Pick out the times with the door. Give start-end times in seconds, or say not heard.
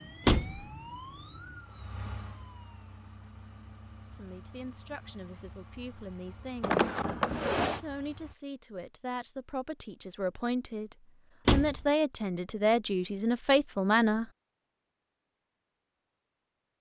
0.2-0.7, 6.6-7.8, 11.4-11.8.